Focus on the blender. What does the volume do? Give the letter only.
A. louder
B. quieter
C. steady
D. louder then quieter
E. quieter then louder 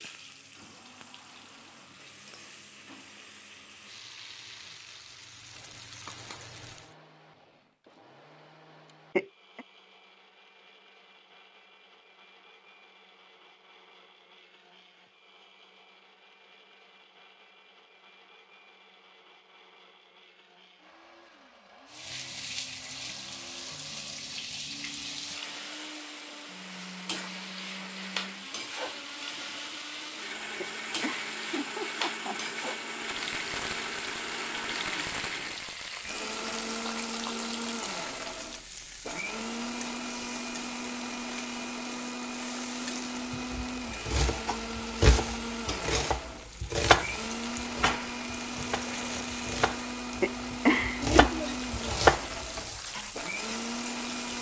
A.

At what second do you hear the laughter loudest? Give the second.
51 s.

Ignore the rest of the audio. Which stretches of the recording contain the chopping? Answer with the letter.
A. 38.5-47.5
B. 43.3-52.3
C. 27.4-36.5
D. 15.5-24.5
B.